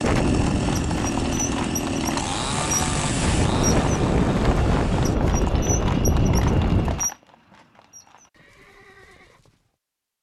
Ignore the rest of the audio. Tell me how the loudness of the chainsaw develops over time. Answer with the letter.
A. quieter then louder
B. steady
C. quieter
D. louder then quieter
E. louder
C.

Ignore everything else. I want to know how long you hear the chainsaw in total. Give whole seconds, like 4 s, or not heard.
5 s.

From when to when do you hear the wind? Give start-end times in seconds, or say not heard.
0.0-7.0.